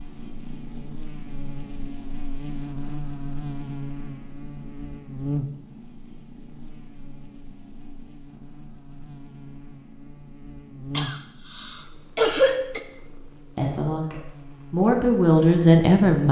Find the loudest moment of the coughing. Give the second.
12 s.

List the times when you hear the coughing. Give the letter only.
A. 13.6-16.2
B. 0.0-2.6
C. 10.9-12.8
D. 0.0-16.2
C.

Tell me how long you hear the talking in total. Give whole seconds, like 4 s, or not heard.
3 s.